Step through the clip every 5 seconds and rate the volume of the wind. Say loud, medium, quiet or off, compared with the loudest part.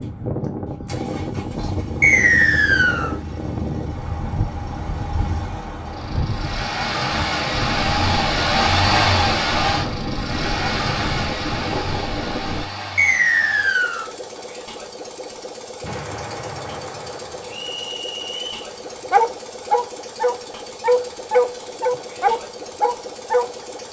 loud, loud, loud, off, off.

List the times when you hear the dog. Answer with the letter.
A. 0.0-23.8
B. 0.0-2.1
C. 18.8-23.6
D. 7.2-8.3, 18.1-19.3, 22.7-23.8
C.